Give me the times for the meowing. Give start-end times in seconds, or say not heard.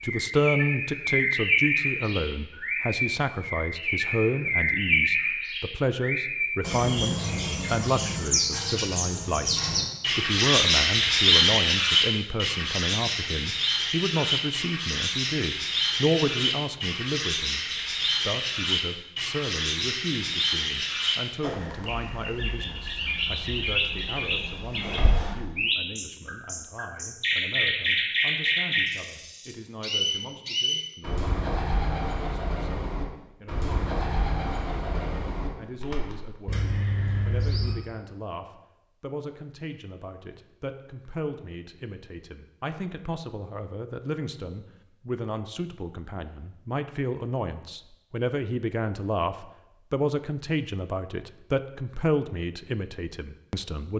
not heard.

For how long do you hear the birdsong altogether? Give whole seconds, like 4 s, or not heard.
38 s.